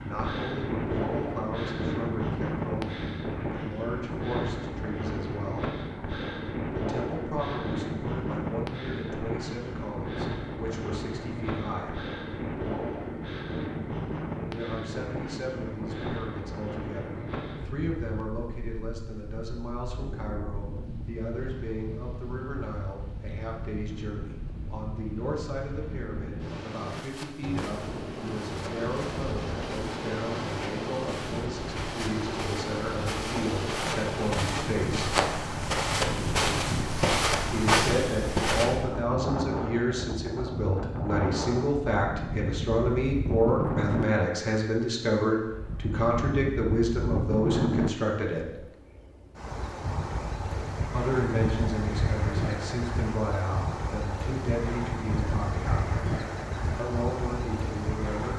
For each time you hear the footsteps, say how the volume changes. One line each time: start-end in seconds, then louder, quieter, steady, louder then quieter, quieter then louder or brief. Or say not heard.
26.8-38.8 louder.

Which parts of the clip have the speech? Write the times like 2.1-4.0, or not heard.
0.0-5.7, 6.8-12.1, 14.4-35.1, 37.5-48.6, 50.9-56.0, 56.8-58.3.